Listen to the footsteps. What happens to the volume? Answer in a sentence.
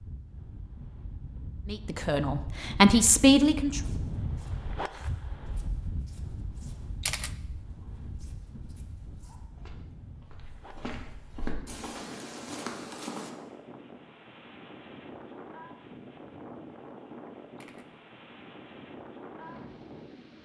The volume of the footsteps goes up.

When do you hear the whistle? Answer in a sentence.
You can't hear the whistle here.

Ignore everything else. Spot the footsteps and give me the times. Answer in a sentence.
You can hear the footsteps from 3.8 to 13.3 s.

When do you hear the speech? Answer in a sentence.
The speech can be heard from 1.6 to 3.8 s.